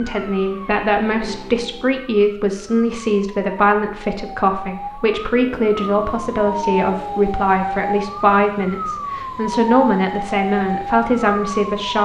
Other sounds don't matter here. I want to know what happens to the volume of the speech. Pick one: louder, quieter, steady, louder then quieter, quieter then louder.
steady.